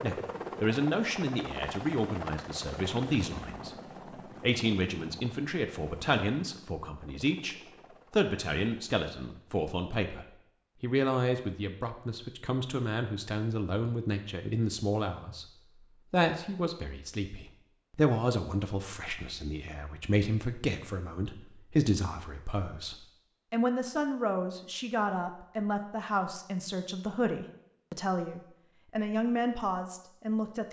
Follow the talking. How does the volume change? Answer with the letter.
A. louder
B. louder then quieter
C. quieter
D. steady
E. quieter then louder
D.